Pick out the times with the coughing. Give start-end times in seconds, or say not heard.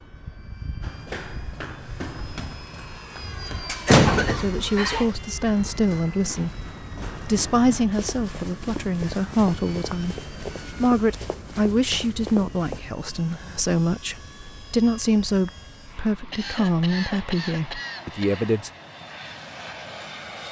3.9-5.2, 16.3-18.4.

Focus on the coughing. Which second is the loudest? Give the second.
4 s.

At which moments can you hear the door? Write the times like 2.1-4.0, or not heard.
3.9-4.6.